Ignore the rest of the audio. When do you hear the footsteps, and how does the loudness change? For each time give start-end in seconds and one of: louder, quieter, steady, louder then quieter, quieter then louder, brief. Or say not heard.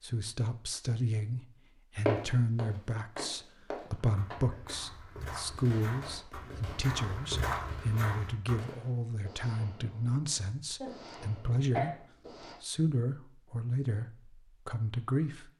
2.0-8.6 louder.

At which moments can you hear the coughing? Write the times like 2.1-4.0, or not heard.
3.9-4.8, 10.3-11.9.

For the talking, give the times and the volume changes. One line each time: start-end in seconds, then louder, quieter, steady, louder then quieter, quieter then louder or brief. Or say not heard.
0.0-15.5 steady.